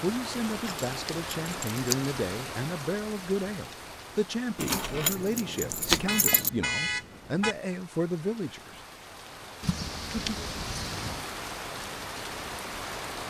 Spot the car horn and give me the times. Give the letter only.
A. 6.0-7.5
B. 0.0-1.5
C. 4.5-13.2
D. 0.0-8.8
A.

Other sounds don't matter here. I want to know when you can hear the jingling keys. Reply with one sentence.
You can hear the jingling keys from 0.5 to 2.1 s, from 4.5 to 6.5 s and from 9.6 to 11.2 s.